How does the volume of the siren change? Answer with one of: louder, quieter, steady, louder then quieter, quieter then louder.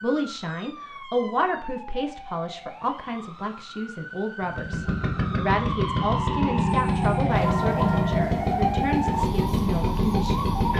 louder.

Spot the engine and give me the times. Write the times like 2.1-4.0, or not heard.
4.4-10.7.